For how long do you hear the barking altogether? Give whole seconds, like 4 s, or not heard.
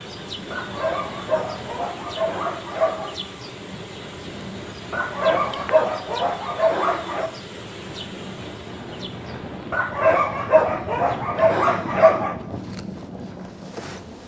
8 s.